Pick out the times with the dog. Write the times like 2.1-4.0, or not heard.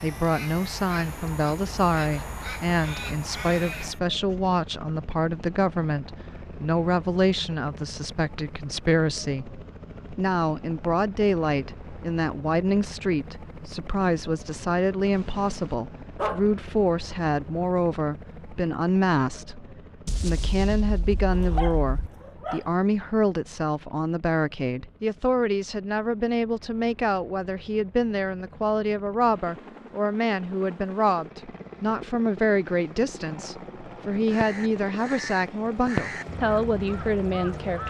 15.1-16.5, 21.3-22.6.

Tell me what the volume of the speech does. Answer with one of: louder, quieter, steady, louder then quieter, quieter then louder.
steady.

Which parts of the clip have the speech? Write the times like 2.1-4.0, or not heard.
0.0-37.8.